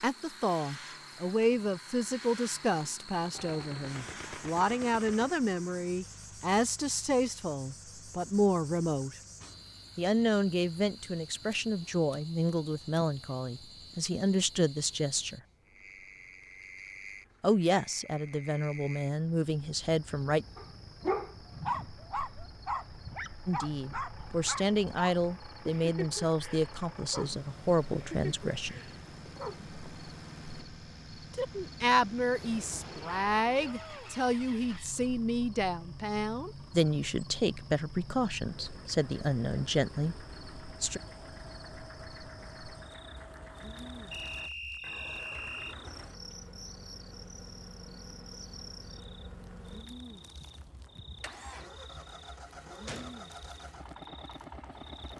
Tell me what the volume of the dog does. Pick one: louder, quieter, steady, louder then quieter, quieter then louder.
quieter.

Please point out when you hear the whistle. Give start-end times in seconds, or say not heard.
44.1-45.8.